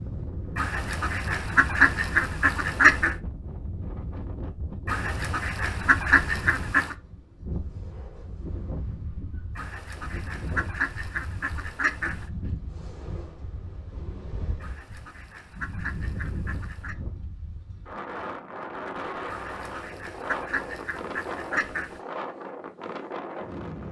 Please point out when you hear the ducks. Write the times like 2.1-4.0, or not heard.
0.6-3.1, 4.8-7.0, 9.6-12.3, 14.6-16.9, 19.2-22.0.